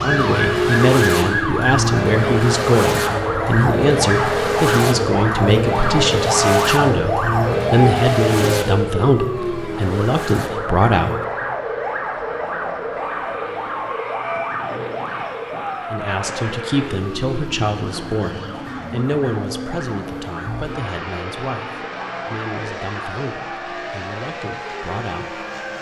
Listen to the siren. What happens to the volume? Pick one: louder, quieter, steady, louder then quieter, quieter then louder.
quieter.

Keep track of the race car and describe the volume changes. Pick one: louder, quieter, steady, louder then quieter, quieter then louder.
quieter.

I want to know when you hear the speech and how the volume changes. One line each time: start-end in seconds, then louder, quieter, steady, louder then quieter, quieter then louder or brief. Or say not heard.
0.0-11.2 steady
15.9-25.4 quieter.